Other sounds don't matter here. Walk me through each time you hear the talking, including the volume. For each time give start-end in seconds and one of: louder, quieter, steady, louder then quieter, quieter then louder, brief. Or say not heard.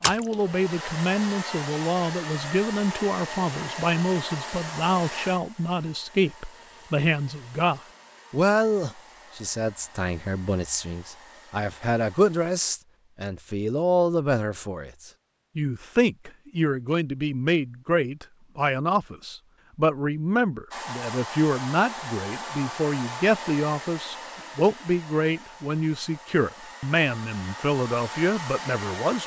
0.0-29.2 steady.